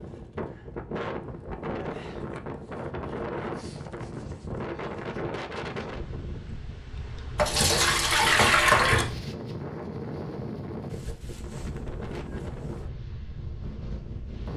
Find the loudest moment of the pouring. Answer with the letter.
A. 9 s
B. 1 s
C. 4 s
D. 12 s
A.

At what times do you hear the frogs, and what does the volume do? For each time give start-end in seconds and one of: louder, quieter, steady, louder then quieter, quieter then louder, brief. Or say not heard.
not heard.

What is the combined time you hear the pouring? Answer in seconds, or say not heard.
2 s.